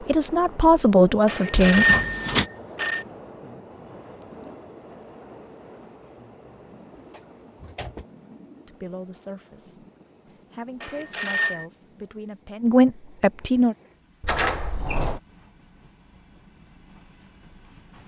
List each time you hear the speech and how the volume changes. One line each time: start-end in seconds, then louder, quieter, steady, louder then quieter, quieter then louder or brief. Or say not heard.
0.0-1.9 brief
8.7-13.8 louder.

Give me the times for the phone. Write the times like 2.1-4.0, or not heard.
1.2-3.0, 10.8-11.7.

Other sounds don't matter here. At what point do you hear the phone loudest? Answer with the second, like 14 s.
2 s.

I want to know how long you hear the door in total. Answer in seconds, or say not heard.
3 s.